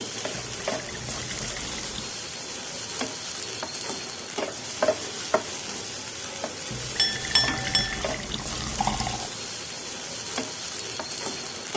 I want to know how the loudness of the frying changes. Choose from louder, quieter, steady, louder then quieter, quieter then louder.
steady.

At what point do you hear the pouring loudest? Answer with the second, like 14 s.
9 s.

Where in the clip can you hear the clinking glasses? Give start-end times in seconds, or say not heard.
7.0-8.0.